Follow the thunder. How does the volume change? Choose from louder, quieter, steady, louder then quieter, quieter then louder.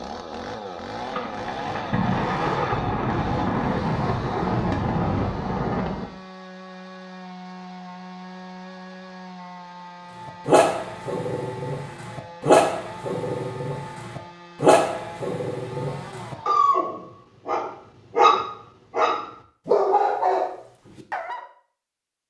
steady.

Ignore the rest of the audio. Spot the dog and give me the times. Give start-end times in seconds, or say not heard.
10.2-21.4.